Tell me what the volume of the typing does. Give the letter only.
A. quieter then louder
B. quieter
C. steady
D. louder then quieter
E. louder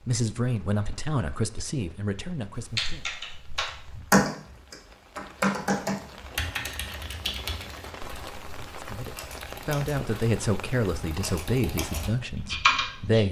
A.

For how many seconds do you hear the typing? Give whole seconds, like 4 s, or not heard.
11 s.